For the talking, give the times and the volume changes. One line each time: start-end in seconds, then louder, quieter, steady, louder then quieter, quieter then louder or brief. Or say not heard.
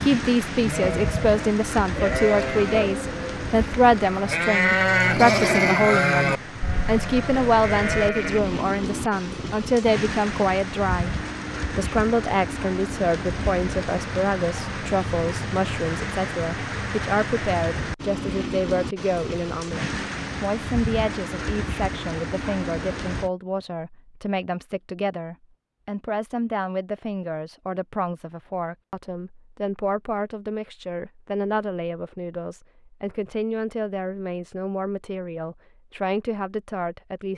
0.0-37.3 quieter.